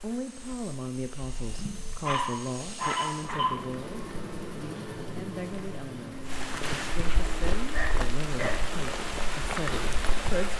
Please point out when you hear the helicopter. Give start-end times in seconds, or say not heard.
0.0-10.2.